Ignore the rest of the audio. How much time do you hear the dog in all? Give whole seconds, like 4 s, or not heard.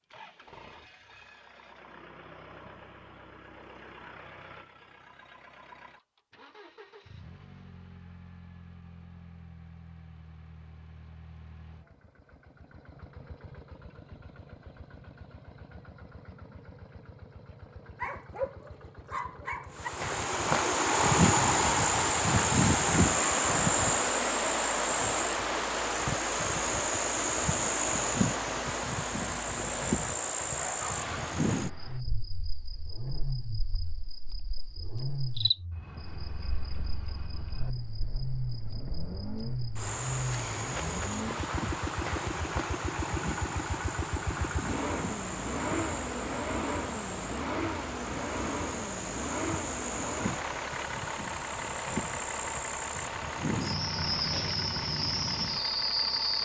2 s.